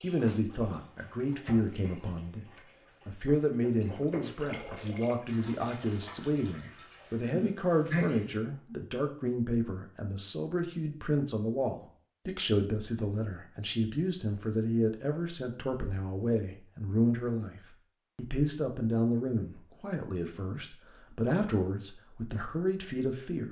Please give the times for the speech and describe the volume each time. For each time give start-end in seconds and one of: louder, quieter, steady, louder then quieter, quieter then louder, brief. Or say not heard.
0.0-2.5 brief
3.0-23.4 steady.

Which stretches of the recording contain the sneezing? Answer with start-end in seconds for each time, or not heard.
7.3-8.8.